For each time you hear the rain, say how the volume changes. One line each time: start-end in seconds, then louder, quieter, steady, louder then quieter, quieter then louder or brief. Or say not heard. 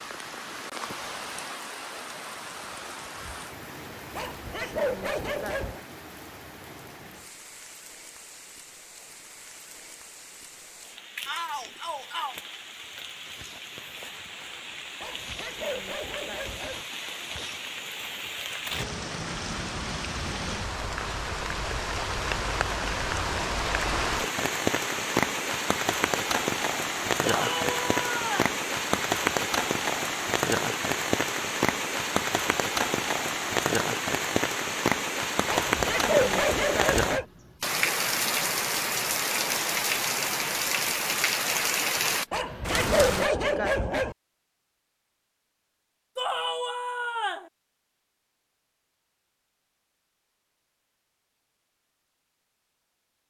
0.0-43.3 louder.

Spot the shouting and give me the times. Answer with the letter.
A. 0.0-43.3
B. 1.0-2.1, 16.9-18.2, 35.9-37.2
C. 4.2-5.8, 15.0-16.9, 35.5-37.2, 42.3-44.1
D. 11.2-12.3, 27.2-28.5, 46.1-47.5
D.